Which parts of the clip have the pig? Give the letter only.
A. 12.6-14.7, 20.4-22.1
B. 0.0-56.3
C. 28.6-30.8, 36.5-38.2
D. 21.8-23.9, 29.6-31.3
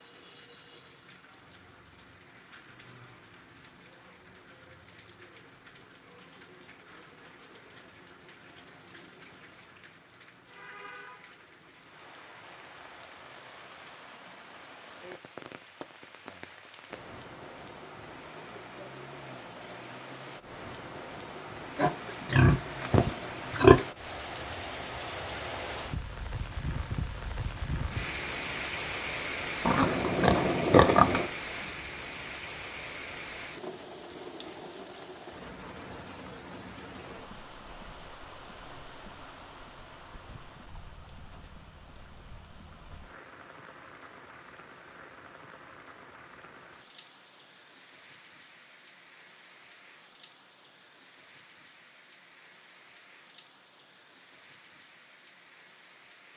D.